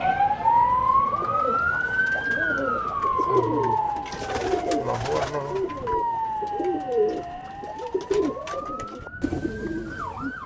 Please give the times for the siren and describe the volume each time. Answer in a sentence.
The siren can be heard from 0.0 to 10.4 s, getting quieter.